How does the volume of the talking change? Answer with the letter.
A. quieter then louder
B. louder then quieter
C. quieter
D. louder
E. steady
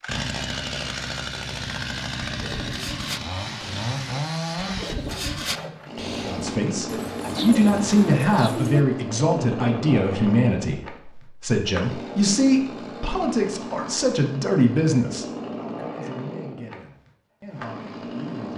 C.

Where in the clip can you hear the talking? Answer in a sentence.
The talking can be heard from 6.2 to 18.5 s.